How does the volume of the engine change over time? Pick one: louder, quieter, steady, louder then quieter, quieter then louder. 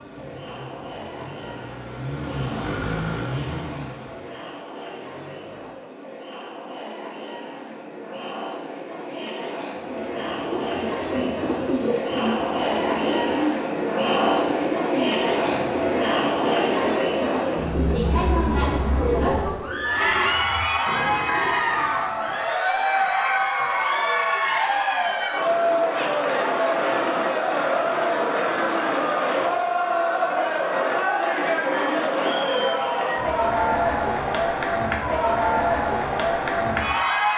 louder then quieter.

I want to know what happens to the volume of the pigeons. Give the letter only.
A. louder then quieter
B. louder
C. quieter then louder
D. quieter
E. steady
D.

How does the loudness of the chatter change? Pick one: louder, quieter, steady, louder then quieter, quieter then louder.
louder.